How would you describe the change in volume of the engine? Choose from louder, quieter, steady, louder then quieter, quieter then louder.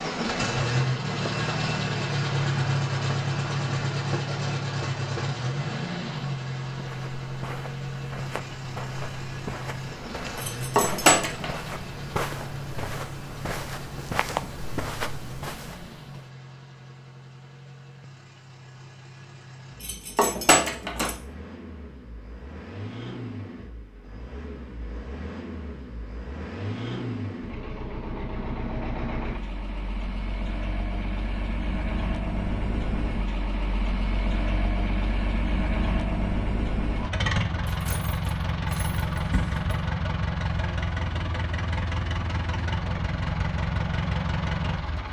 quieter then louder.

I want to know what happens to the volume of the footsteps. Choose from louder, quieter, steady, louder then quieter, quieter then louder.
louder.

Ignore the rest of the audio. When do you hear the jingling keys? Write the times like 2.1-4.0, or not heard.
10.3-11.5, 19.8-21.1, 37.6-39.6.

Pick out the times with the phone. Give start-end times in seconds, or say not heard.
not heard.